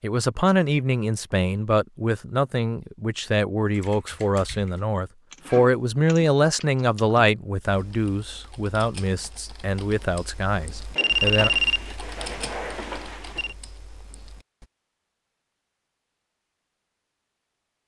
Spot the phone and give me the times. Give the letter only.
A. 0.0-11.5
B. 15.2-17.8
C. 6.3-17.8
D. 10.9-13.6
D.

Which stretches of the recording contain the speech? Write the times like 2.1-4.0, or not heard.
0.0-11.5.